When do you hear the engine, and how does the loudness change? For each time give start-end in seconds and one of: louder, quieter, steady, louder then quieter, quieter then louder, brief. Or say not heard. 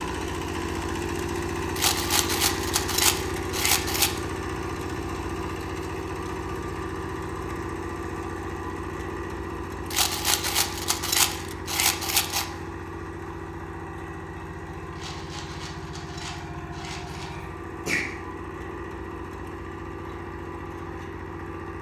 0.0-21.7 quieter.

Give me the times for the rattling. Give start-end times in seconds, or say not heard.
1.8-4.2, 9.9-12.4, 14.9-17.3.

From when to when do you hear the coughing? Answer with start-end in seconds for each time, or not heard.
17.1-18.1.